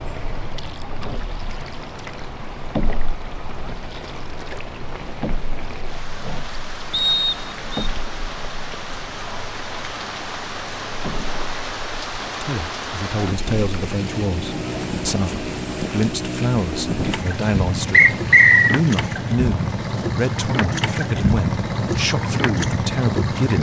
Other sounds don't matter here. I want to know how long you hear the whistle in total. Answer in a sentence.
The whistle can be heard for 2 seconds in total.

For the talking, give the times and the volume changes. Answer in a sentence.
You can hear the talking from 12.4 to 23.5 s, at a steady volume.